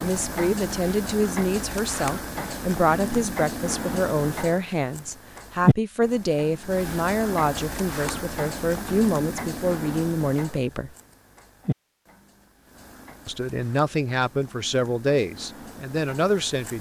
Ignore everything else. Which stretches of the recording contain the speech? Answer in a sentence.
You can hear the speech from 0.0 to 10.9 s and from 13.2 to 16.7 s.